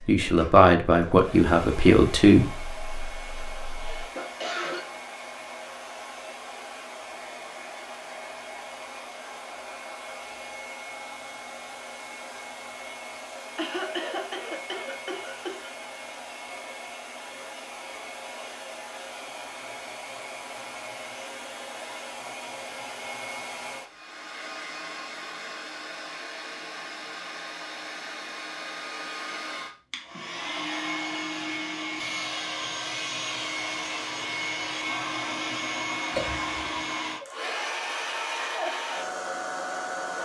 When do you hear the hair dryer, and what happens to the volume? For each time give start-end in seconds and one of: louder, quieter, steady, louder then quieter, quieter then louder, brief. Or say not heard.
0.0-40.2 louder.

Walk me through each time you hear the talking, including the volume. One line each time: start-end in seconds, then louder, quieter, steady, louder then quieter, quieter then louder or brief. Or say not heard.
0.1-4.0 quieter.